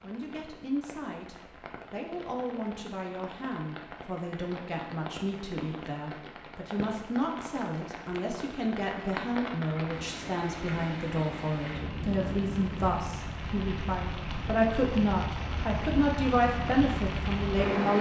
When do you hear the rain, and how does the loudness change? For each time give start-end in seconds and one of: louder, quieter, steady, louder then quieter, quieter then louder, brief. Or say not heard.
0.0-17.9 louder.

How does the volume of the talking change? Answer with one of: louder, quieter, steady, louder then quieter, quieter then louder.
louder.